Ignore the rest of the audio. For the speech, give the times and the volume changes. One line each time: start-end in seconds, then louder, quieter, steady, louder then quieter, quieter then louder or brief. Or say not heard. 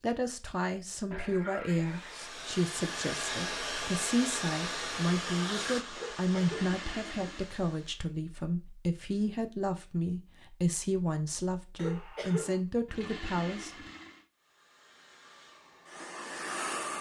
0.0-13.9 steady.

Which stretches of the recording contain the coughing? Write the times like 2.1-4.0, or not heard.
6.0-6.7, 11.8-12.6.